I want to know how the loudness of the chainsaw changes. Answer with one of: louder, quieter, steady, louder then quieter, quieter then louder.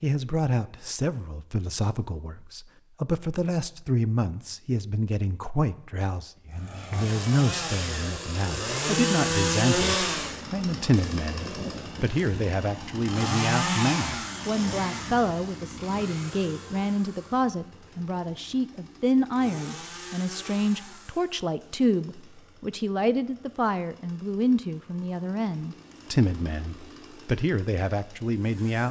quieter.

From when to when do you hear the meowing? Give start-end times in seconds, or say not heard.
not heard.